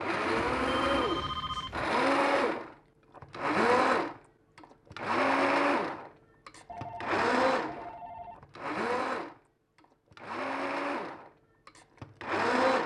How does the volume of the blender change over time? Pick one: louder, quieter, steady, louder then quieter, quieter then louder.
quieter.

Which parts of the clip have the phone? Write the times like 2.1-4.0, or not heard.
0.3-1.9, 6.7-8.4.